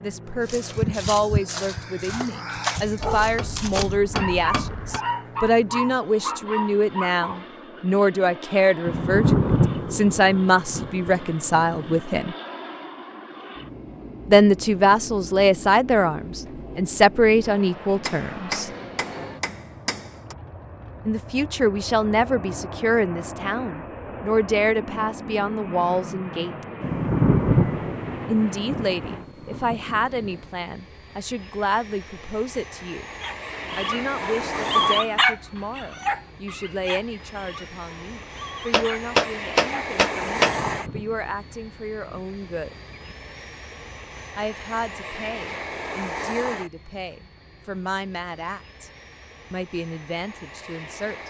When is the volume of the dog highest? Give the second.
35 s.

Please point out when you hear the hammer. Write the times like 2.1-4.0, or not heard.
3.0-5.0, 18.1-20.4, 38.7-40.5.